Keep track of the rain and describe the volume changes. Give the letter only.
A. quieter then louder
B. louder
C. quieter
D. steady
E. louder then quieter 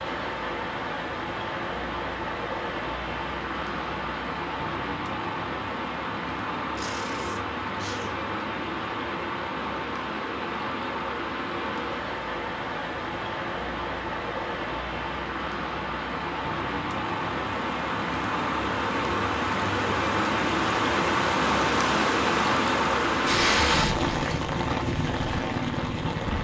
B.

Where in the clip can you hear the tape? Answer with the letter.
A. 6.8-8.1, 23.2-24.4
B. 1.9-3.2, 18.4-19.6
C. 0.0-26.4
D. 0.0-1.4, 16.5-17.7
A.